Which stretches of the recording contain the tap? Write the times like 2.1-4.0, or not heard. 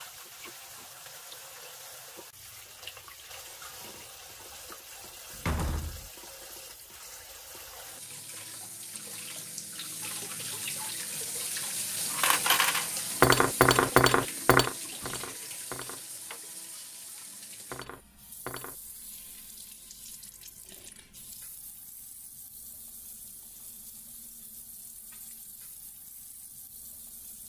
0.0-27.4.